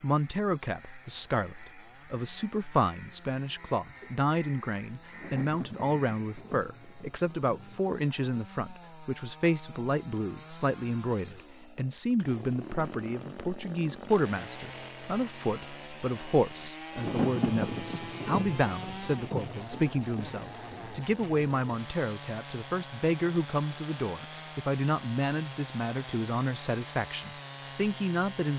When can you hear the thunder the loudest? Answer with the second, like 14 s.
17 s.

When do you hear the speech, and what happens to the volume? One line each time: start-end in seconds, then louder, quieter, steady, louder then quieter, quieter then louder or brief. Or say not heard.
0.0-28.5 steady.